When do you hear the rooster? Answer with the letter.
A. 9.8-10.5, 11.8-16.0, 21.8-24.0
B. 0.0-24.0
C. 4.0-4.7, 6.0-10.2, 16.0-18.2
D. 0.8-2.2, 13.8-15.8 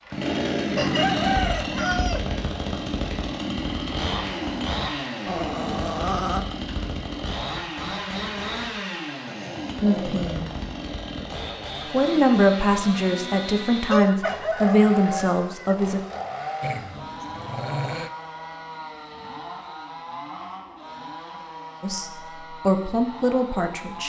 D.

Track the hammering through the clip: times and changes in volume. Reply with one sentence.
You can't hear the hammering here.